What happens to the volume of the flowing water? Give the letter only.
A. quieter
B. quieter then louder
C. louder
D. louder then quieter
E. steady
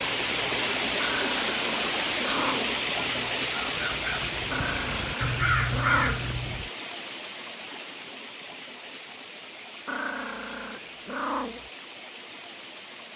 A.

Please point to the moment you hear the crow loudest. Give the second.
6 s.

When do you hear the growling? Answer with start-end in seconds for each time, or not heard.
0.9-2.8, 4.5-6.3, 9.8-11.7.